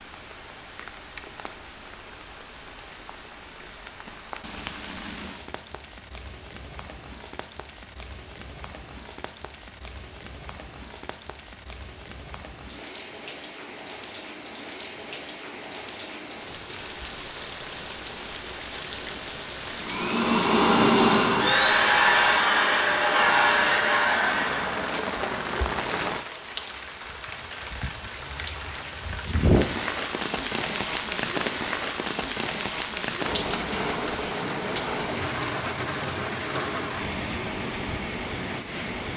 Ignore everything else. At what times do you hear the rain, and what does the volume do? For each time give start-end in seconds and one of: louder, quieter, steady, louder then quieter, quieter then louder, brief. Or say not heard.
0.0-39.1 louder.